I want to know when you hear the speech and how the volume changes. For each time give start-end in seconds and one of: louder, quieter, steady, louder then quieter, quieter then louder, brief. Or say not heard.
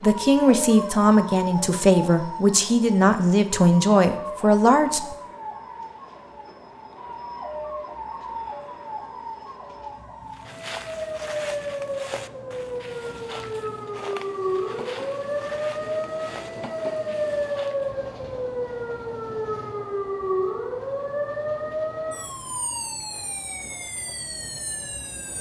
0.0-5.2 steady.